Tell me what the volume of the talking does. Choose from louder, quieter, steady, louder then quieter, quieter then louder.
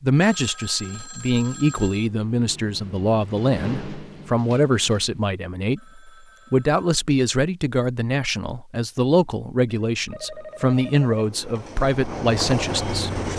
steady.